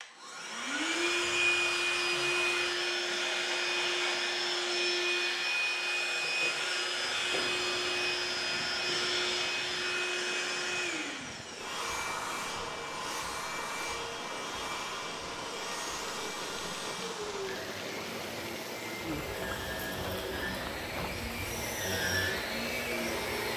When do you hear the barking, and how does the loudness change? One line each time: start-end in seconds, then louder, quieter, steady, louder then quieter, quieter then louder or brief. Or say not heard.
not heard.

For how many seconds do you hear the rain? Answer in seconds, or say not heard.
17 s.